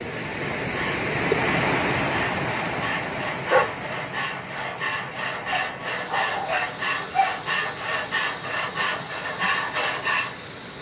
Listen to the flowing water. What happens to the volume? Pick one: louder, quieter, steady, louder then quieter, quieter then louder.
quieter.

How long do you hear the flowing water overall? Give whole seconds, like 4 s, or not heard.
11 s.